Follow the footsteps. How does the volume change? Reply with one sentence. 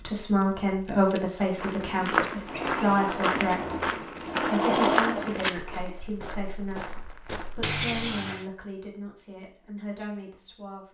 The volume of the footsteps goes down.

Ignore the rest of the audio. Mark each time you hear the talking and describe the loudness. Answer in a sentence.
You can hear the talking from 0.0 to 10.8 s, getting quieter.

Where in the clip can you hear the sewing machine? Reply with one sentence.
The sewing machine can be heard from 2.4 to 6.0 s.